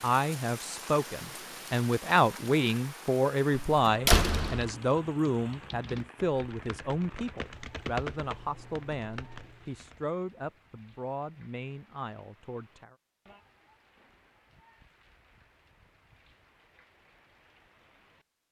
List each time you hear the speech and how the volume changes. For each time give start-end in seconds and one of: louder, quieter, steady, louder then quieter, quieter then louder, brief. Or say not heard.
0.0-12.9 quieter.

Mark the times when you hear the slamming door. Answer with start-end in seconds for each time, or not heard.
3.5-4.7.